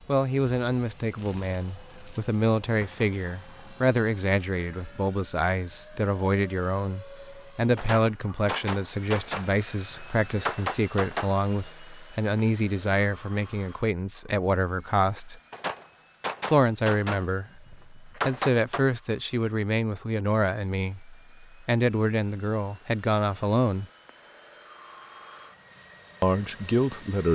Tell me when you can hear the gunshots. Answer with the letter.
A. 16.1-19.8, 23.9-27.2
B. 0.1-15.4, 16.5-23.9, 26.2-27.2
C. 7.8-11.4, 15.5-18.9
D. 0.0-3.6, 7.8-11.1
C.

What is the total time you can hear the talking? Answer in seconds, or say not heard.
24 s.